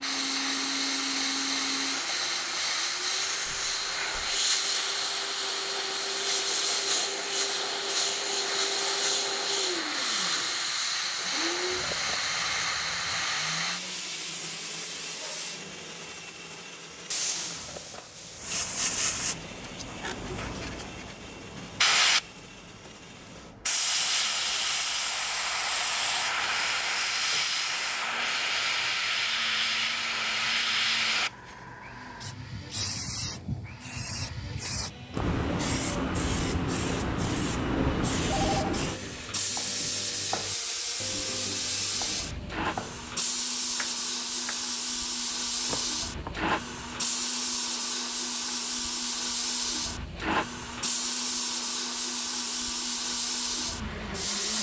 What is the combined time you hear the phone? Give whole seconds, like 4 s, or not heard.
2 s.